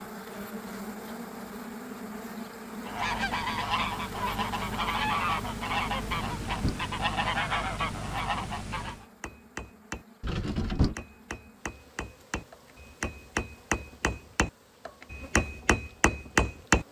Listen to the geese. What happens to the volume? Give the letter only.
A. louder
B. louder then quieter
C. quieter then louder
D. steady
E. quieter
D.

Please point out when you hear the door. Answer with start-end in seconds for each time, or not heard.
6.1-6.8, 10.2-10.9.